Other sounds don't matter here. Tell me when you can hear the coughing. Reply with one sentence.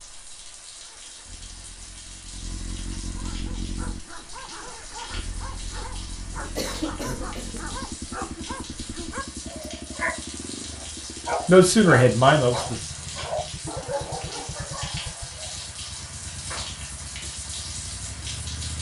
The coughing can be heard from 6.3 to 7.7 s.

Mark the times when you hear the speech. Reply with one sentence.
The speech can be heard from 11.1 to 12.8 s.